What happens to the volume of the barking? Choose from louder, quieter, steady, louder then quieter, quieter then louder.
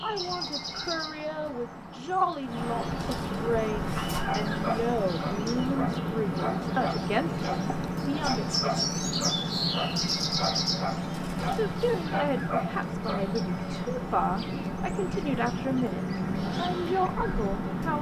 steady.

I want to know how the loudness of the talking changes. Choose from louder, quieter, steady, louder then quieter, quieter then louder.
steady.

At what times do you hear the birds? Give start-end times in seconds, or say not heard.
0.0-17.9.